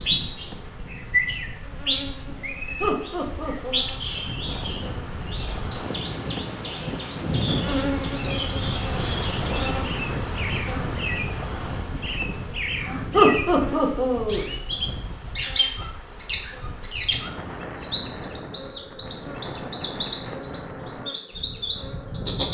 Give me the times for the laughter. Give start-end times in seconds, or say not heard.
2.8-3.9, 13.1-14.4.